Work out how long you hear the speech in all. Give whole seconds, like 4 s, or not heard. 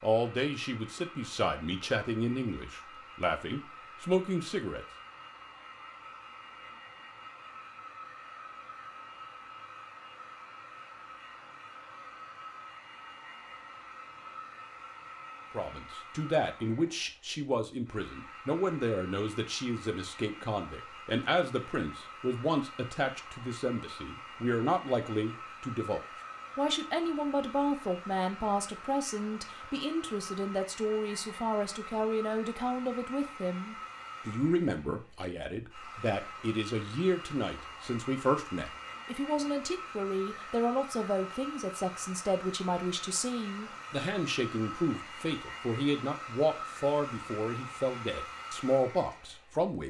39 s.